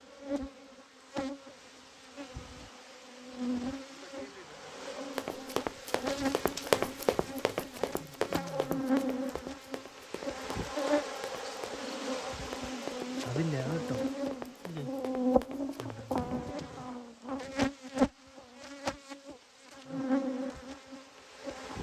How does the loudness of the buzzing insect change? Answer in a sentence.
The volume of the buzzing insect goes up.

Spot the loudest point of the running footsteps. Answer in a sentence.
The loudest moment of the running footsteps is at 7 seconds.